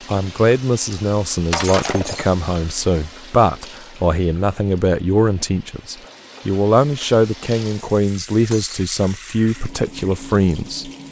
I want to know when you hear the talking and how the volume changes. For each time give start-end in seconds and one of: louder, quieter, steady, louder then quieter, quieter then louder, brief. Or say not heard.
0.1-10.9 steady.